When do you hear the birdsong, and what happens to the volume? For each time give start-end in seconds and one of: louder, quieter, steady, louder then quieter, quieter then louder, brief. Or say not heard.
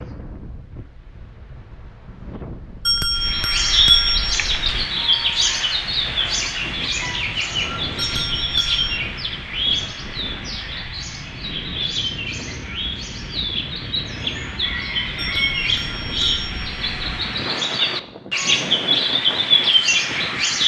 3.2-20.6 quieter then louder.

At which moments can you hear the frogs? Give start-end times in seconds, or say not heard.
not heard.